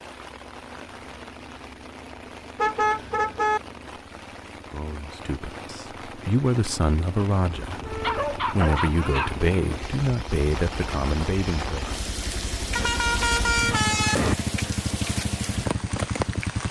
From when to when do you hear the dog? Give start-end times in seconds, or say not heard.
8.0-9.3.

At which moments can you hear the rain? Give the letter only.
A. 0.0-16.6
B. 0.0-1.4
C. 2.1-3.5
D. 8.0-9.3
A.